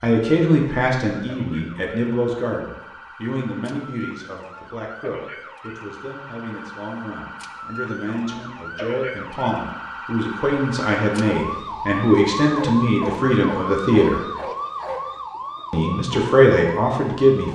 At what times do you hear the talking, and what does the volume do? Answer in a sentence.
The talking can be heard from 0.0 to 14.2 s, getting quieter then louder; and briefly from 15.7 to 17.5 s.